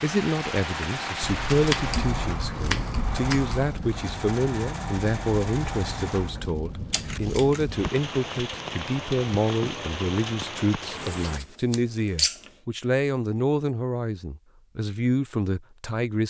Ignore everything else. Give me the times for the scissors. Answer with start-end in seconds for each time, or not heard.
1.2-3.7, 6.9-7.7, 11.1-12.5.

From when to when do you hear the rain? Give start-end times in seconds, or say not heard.
0.0-11.4.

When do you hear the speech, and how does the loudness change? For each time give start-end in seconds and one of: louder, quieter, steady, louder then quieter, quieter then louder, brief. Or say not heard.
0.0-16.2 steady.